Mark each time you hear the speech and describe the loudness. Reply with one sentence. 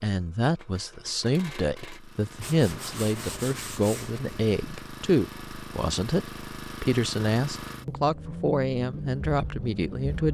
You can hear the speech from 0.0 to 10.2 s, at a steady volume.